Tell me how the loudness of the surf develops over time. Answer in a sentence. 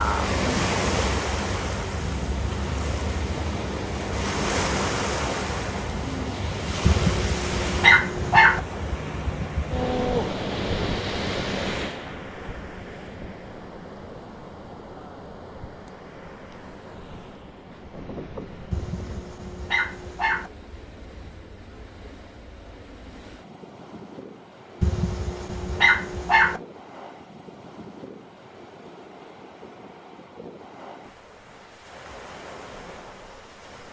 The volume of the surf goes down.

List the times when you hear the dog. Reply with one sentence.
The dog can be heard from 6.8 to 8.6 s, from 18.7 to 20.5 s and from 24.8 to 26.6 s.